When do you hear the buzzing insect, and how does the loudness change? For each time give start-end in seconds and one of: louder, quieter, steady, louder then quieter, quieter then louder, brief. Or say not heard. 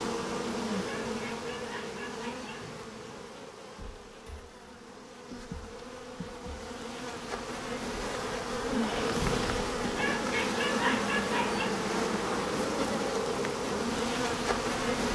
0.0-15.1 quieter then louder.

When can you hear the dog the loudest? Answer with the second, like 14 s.
11 s.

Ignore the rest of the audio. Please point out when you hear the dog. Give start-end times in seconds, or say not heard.
1.1-2.7, 9.9-11.8.